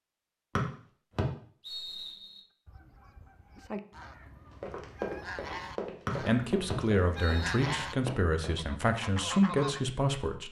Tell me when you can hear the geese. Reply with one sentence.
You can hear the geese from 2.6 to 8.0 s and from 8.6 to 9.8 s.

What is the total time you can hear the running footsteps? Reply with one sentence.
You can hear the running footsteps for 4 seconds altogether.